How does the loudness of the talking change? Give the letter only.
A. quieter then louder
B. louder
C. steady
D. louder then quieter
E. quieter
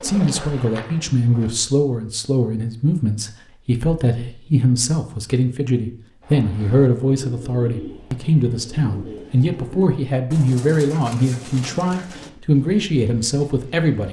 C.